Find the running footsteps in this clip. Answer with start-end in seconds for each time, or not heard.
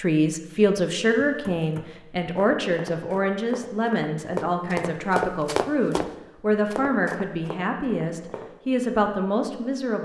1.1-8.5.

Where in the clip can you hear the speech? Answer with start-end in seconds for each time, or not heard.
0.0-9.9.